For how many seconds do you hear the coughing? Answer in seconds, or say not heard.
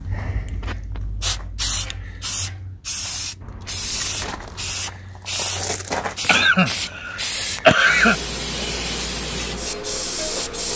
2 s.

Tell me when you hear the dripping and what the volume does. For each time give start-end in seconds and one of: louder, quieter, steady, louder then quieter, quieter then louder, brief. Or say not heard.
not heard.